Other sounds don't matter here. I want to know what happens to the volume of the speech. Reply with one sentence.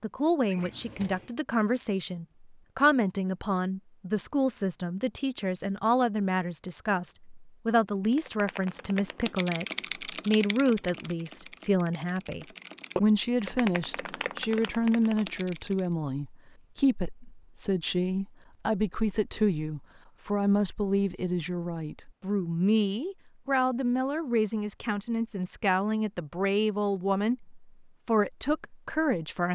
The loudness of the speech stays about the same.